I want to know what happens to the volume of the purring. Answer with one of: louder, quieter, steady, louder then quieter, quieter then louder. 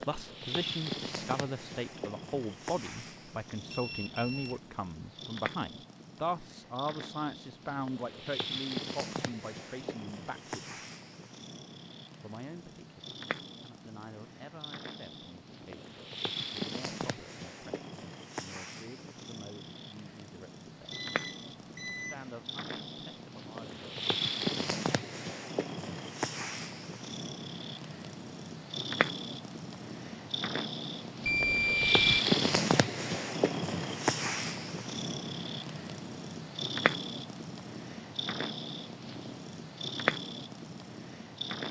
louder.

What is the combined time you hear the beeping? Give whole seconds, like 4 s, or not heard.
3 s.